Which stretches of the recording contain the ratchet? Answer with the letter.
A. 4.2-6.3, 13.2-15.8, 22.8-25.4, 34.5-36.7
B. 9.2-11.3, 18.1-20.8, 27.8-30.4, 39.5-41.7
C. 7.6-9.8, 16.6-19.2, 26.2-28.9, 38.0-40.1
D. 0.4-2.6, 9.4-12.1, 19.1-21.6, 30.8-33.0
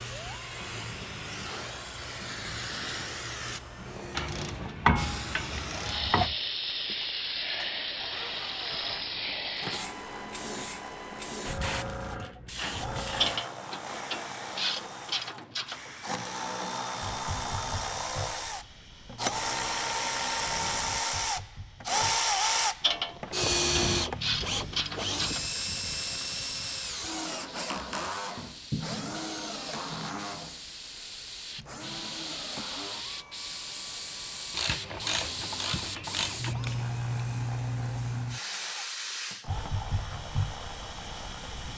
A.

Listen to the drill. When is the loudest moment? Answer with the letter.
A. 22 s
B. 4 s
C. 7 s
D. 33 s
A.